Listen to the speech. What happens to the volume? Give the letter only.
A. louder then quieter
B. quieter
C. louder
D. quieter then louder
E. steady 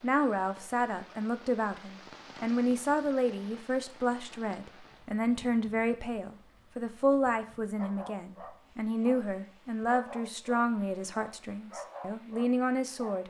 E.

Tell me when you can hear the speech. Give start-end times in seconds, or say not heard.
0.0-13.2.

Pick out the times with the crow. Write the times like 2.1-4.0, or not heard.
not heard.